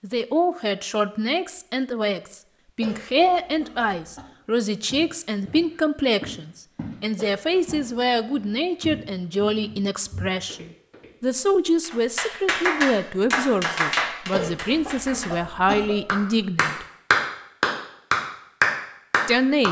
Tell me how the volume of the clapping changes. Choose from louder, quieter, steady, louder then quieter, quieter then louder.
quieter then louder.